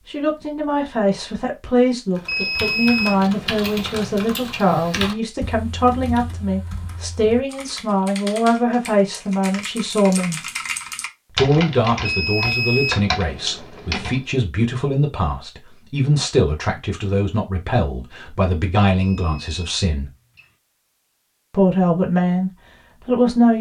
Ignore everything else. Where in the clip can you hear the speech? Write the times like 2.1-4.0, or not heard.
0.1-10.4, 11.3-20.1, 21.5-23.5.